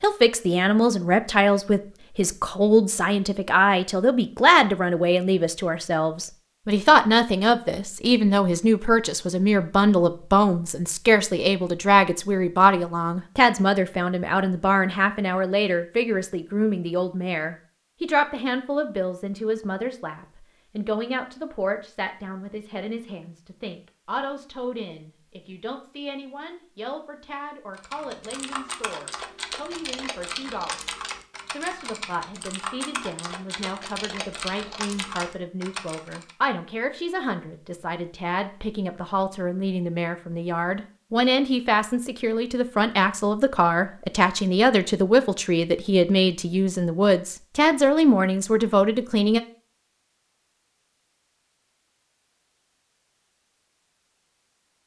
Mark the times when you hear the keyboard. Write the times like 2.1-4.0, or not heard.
27.8-36.4.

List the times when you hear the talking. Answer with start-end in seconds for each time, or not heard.
0.0-49.4.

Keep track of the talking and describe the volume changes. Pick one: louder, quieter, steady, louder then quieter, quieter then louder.
quieter then louder.